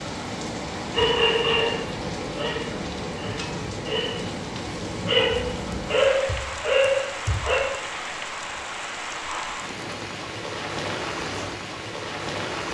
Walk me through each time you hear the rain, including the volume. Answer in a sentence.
The rain can be heard from 0.0 to 12.7 s, at a steady volume.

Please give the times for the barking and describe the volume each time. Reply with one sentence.
You can hear the barking from 0.9 to 7.7 s, getting quieter then louder.